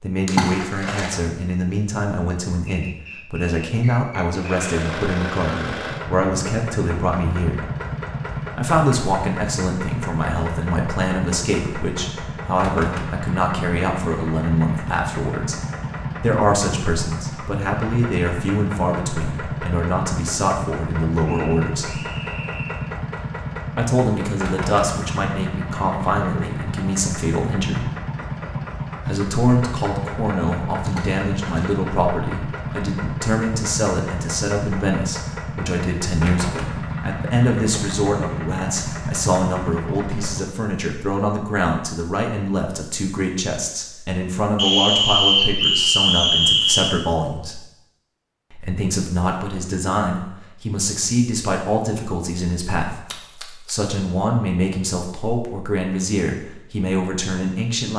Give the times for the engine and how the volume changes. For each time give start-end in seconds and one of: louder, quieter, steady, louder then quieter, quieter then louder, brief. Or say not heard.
4.3-40.5 steady.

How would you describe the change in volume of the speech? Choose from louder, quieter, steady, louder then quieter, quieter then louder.
steady.